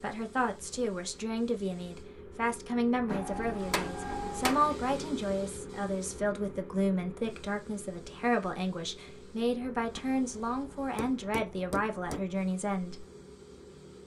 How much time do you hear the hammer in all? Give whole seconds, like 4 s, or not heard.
4 s.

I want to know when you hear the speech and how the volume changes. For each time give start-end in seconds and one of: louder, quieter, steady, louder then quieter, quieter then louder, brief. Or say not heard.
0.0-13.1 steady.